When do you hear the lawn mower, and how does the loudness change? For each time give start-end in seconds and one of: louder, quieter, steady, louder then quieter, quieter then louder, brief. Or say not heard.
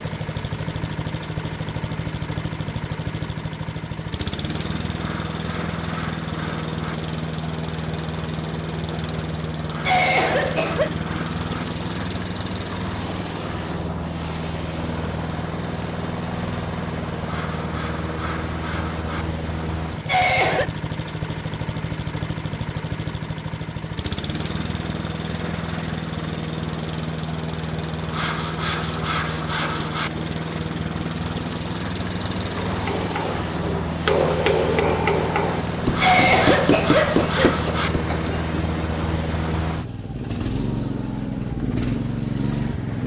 0.0-43.0 steady.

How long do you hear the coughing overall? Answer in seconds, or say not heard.
4 s.